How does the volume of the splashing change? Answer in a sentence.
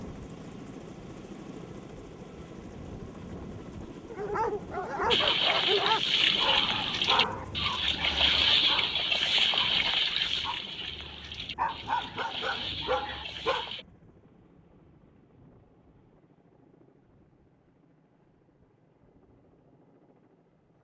The loudness of the splashing goes down.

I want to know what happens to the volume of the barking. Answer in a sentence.
The loudness of the barking goes down, then up.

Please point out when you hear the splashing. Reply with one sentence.
The splashing can be heard from 5.1 to 13.8 s.